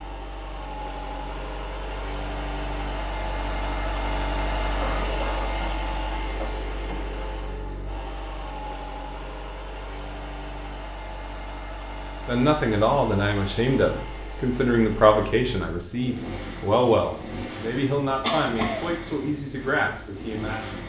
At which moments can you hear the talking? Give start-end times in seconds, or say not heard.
12.2-20.8.